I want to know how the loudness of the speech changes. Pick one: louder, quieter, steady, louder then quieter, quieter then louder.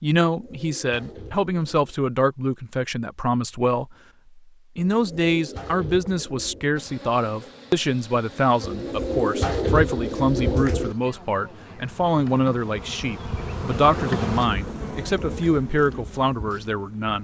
steady.